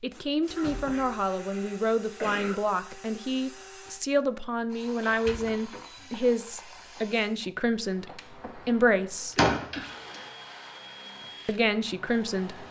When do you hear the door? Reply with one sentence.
The door can be heard from 0.5 to 1.1 s, from 5.2 to 6.2 s and from 9.3 to 9.8 s.